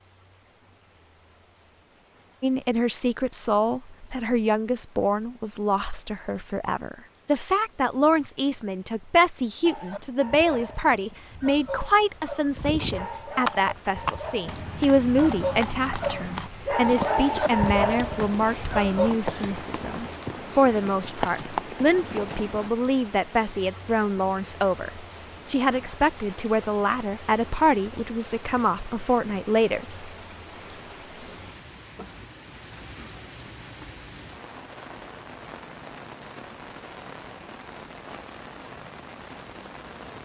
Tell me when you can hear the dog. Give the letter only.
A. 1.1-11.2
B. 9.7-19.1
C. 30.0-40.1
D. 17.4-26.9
B.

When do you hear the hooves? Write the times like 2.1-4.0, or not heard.
12.6-22.7.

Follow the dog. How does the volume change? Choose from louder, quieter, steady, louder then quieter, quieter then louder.
louder.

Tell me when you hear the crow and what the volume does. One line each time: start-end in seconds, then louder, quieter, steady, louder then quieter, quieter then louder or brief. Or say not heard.
not heard.